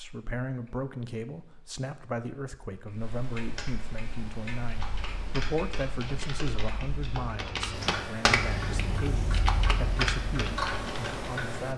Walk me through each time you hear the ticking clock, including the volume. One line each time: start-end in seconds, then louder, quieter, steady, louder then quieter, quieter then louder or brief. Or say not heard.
0.0-11.7 louder.